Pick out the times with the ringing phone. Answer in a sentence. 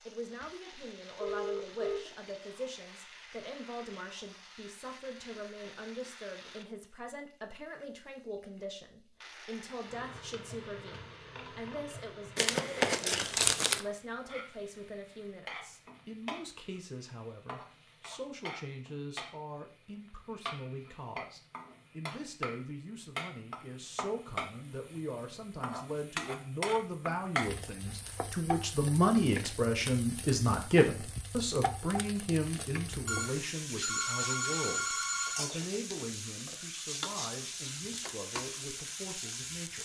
You can hear the ringing phone from 0.4 to 2.0 s and from 33.0 to 35.5 s.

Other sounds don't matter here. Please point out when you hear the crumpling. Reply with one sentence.
You can hear the crumpling from 12.3 to 13.8 s.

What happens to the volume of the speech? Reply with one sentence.
The loudness of the speech goes up, then down.